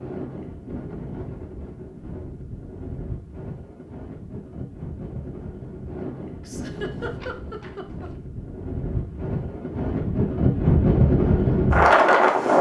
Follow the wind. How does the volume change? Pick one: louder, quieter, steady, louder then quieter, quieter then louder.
louder.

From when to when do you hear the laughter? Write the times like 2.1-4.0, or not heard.
6.4-8.1.